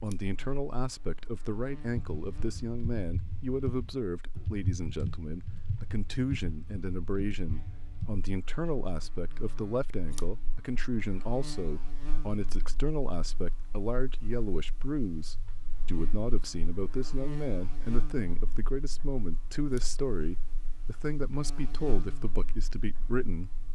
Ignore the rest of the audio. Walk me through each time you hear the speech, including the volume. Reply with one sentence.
You can hear the speech from 0.0 to 23.6 s, at a steady volume.